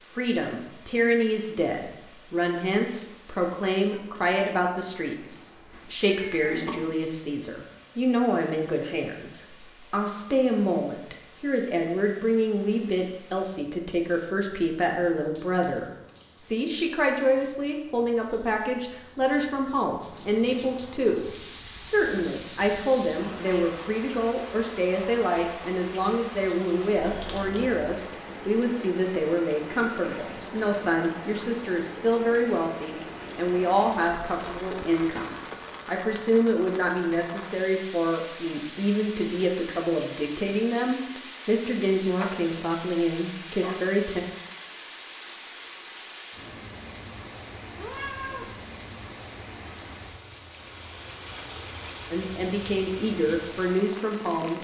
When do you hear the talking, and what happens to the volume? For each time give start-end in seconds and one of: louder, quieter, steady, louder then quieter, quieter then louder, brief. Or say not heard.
0.1-44.2 steady
52.1-54.5 brief.